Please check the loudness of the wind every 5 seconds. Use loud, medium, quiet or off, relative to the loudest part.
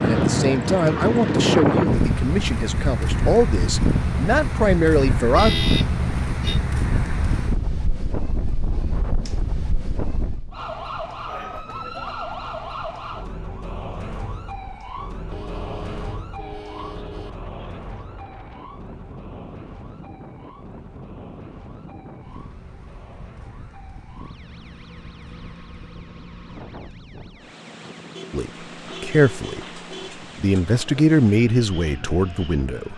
loud, medium, quiet, quiet, quiet, quiet, quiet.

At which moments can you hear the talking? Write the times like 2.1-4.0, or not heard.
0.0-5.6, 28.3-29.8, 30.4-32.9.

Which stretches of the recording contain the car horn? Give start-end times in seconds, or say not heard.
5.3-6.6, 15.3-17.3, 28.1-30.1.